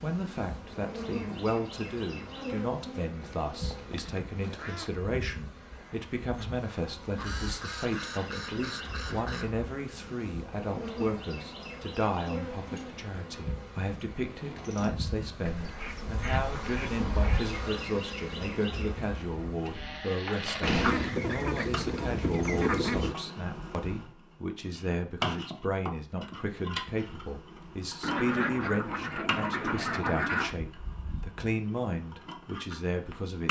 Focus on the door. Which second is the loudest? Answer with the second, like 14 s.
21 s.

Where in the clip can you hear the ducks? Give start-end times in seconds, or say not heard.
3.2-5.0, 7.2-9.6, 15.4-17.4, 20.6-23.1, 28.0-30.6.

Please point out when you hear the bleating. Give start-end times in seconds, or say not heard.
not heard.